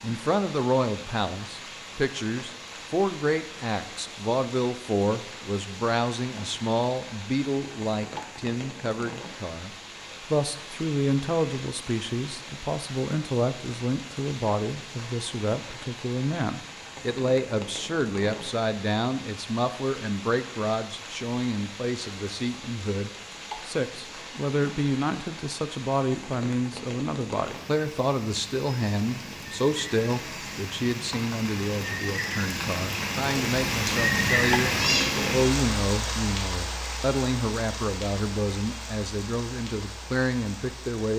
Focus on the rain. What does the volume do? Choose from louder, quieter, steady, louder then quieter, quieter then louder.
louder.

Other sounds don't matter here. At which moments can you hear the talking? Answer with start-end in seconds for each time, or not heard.
0.0-9.7, 10.3-41.1.